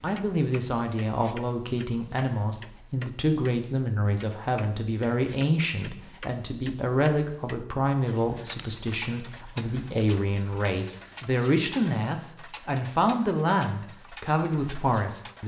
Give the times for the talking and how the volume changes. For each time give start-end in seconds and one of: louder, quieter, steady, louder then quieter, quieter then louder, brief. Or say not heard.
0.0-15.4 steady.